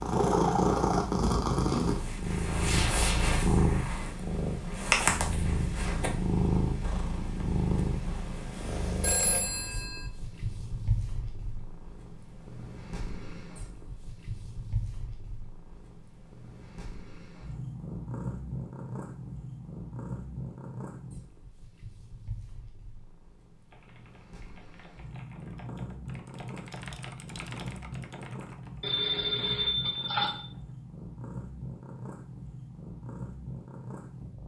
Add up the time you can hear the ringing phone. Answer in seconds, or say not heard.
3 s.